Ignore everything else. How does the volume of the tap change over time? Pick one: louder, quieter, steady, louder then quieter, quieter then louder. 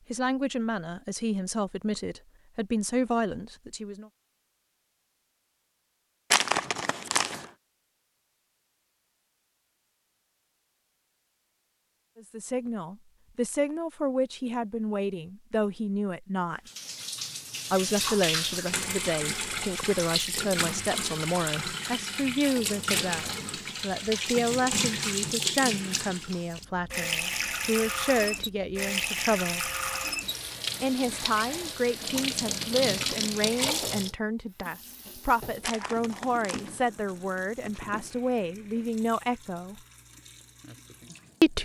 quieter.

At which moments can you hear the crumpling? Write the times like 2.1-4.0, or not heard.
6.3-7.5, 35.6-38.2.